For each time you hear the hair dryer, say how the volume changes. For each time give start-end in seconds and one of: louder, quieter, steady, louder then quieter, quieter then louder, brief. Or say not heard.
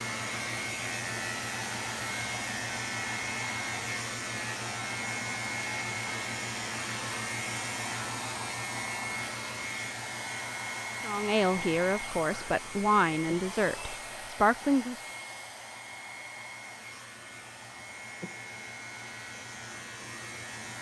0.0-20.7 quieter.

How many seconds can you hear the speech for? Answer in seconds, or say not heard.
4 s.